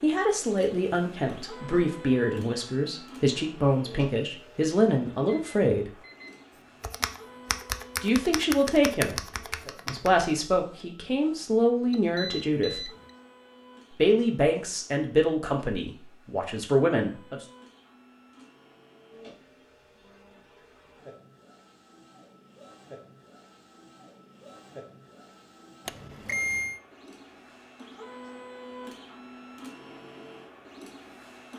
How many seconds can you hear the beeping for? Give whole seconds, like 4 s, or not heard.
3 s.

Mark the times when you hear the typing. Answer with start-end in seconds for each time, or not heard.
6.8-10.8.